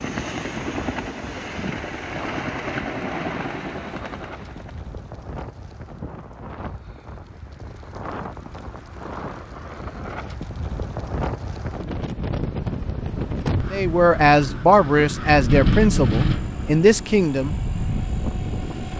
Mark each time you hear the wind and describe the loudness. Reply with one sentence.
The wind can be heard from 0.0 to 18.9 s, getting louder.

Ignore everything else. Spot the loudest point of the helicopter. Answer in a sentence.
The volume of the helicopter peaks at 3 seconds.